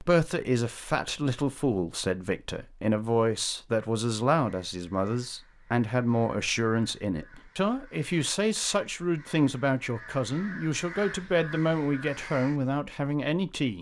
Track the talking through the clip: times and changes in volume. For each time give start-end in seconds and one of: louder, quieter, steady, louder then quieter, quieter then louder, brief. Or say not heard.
0.0-13.7 steady.